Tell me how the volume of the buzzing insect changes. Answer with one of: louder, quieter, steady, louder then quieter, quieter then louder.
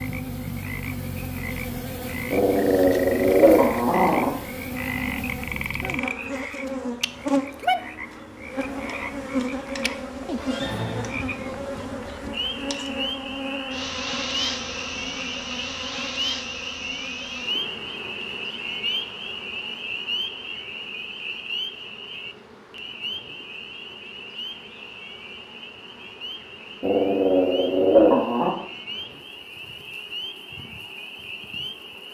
quieter.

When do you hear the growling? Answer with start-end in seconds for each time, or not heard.
2.3-4.3, 26.8-28.6.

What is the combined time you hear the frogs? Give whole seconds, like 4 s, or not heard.
32 s.